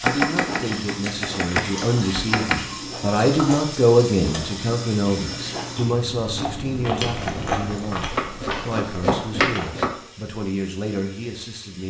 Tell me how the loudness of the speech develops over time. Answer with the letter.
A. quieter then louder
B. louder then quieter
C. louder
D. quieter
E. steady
B.